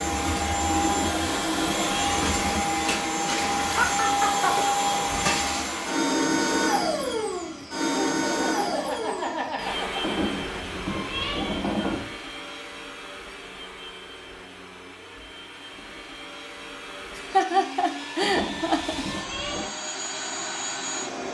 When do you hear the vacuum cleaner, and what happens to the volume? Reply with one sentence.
The vacuum cleaner can be heard from 0.0 to 21.3 s, getting quieter then louder.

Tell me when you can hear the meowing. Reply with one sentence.
You can hear the meowing from 0.8 to 2.6 s, from 10.0 to 12.1 s and from 18.2 to 19.7 s.